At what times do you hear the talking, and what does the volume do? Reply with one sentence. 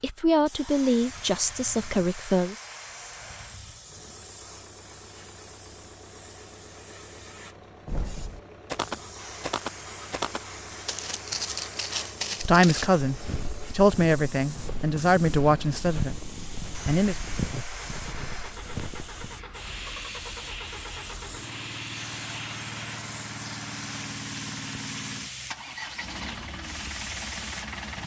You can hear the talking briefly from 0.0 to 2.5 s; and from 12.4 to 17.1 s, getting quieter.